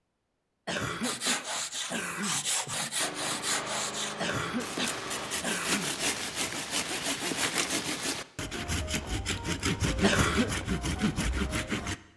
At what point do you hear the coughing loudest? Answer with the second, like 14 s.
10 s.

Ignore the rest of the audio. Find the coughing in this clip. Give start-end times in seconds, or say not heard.
0.7-2.4, 4.2-6.0, 10.0-10.5.